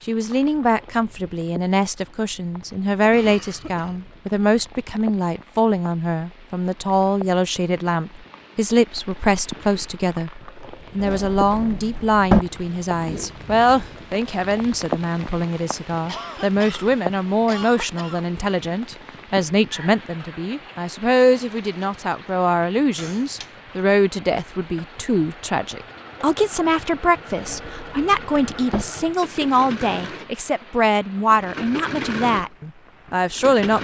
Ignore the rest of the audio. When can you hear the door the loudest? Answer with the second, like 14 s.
12 s.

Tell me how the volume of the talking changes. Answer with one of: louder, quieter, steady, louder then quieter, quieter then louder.
steady.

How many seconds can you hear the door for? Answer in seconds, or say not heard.
3 s.